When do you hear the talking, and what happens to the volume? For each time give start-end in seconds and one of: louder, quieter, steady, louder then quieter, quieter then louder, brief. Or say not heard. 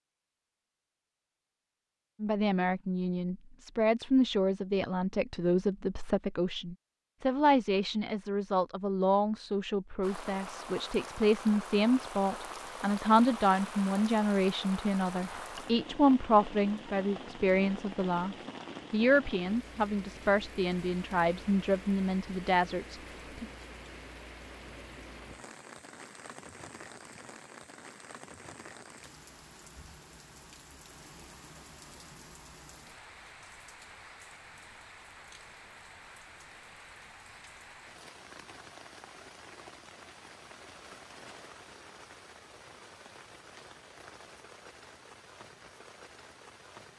2.2-23.4 steady.